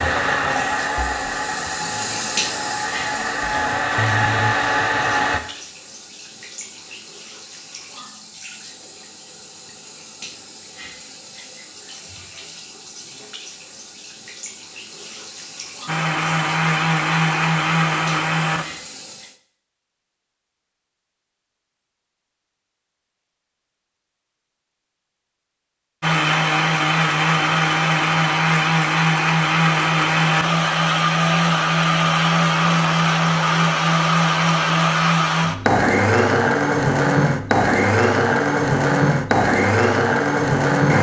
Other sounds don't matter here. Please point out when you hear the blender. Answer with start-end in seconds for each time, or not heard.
0.0-5.4, 15.8-18.6, 26.0-40.9.